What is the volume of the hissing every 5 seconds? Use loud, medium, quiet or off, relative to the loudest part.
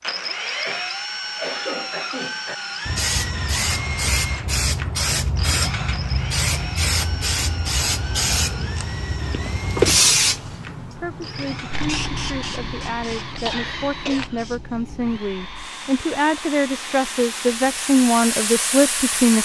loud, loud, loud, medium.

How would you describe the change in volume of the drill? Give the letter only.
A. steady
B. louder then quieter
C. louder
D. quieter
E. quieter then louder
D.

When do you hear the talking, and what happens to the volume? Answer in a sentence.
The talking can be heard from 10.9 to 19.3 s, getting louder.